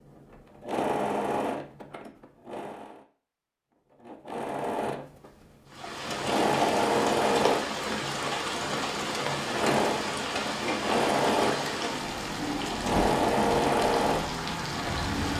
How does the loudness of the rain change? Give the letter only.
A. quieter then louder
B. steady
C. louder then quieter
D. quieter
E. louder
B.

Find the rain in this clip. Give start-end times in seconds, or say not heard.
5.7-15.3.